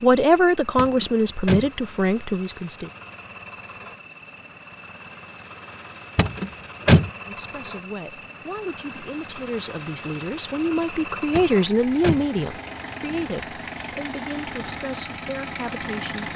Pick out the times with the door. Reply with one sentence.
The door can be heard from 0.8 to 1.7 s, from 6.2 to 7.1 s and from 11.3 to 12.2 s.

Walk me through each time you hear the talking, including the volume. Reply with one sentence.
The talking can be heard briefly from 0.0 to 2.9 s; and from 7.2 to 16.3 s, getting louder then quieter.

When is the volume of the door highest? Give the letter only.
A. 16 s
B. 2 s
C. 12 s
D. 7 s
D.